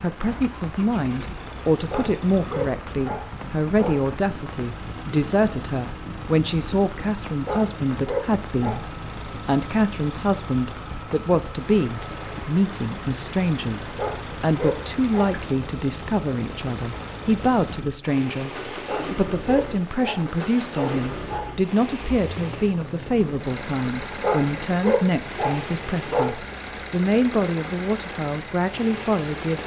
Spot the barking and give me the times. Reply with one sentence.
You can hear the barking from 1.9 to 4.1 s, from 7.5 to 8.8 s, from 13.9 to 15.3 s, from 18.9 to 21.5 s and from 24.2 to 26.3 s.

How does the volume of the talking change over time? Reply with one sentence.
The volume of the talking stays about the same.